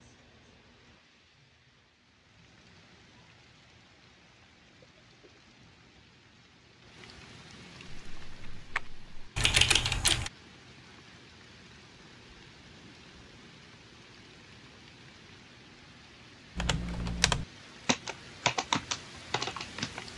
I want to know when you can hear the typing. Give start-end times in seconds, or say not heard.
8.1-10.3, 16.6-20.1.